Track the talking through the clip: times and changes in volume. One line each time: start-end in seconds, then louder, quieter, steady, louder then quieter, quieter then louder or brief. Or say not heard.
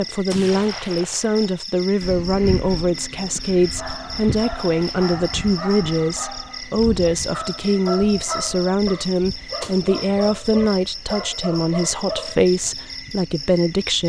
0.0-14.0 steady.